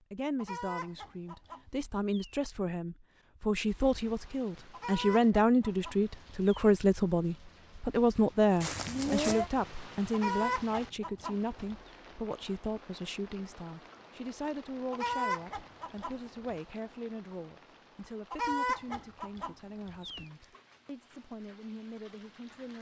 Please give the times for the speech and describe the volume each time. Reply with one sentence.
You can hear the speech from 0.1 to 22.7 s, getting louder then quieter.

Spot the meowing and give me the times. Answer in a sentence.
The meowing can be heard from 8.6 to 9.5 s.